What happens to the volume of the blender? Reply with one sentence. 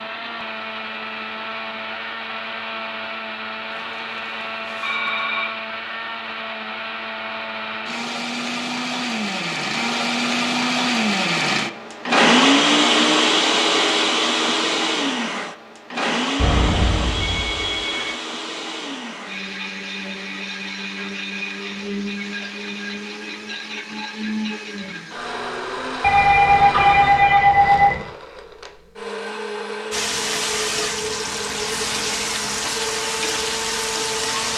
The volume of the blender goes up, then down.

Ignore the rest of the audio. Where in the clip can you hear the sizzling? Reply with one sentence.
You can hear the sizzling from 29.9 to 34.5 s.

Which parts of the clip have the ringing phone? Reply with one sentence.
The ringing phone can be heard from 3.7 to 5.5 s, from 16.4 to 18.1 s and from 26.0 to 28.1 s.